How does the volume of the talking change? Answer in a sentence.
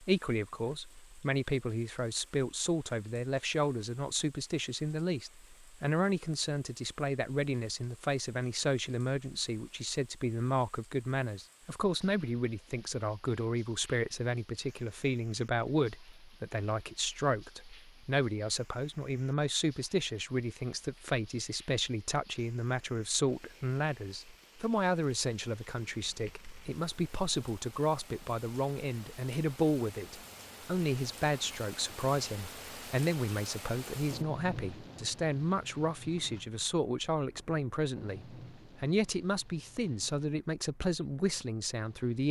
The volume of the talking stays about the same.